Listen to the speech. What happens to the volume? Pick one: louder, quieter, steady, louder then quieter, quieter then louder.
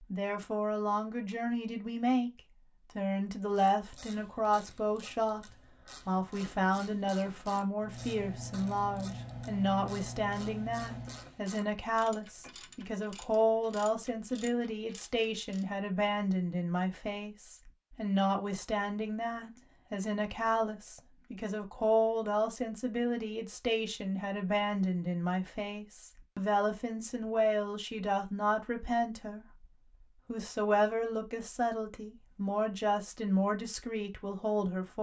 steady.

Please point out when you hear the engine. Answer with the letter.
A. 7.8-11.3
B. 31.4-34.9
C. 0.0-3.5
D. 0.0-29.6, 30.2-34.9
A.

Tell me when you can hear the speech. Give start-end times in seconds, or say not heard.
0.0-29.6, 30.2-34.9.